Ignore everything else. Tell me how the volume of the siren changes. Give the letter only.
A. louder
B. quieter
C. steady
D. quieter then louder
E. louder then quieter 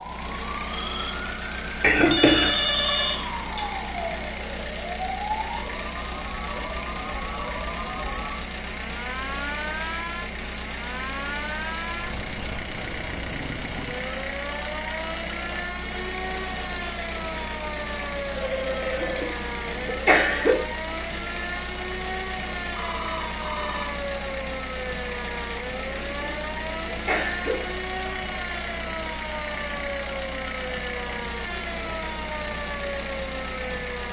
C.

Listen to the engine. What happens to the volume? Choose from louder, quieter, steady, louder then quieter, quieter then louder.
steady.